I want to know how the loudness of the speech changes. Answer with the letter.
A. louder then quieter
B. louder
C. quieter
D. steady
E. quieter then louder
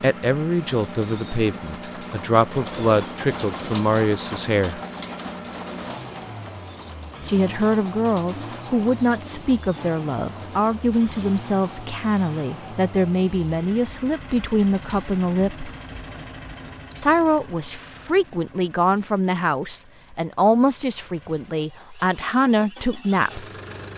D.